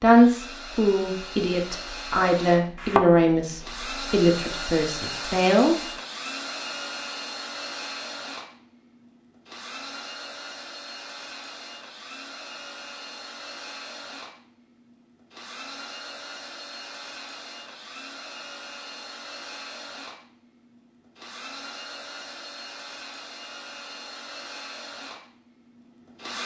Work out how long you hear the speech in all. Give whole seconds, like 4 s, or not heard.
6 s.